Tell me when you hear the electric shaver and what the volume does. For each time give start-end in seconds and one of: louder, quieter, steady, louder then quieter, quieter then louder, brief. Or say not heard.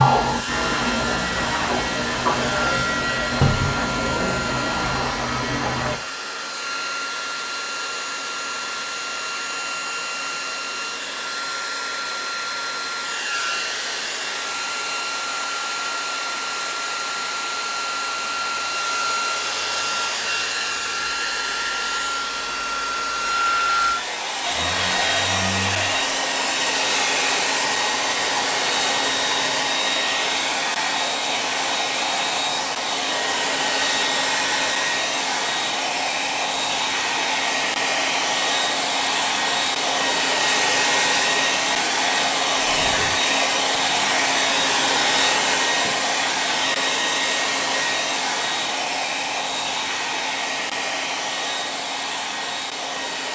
0.0-6.0 steady.